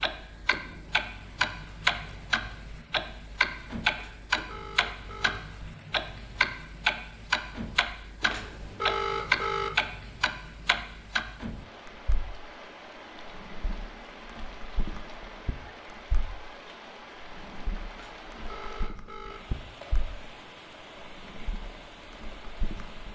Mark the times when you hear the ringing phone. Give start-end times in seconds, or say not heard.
4.0-5.4, 8.2-9.7, 17.9-19.4.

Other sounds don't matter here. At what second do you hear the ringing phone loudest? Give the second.
9 s.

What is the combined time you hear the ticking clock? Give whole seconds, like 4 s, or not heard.
22 s.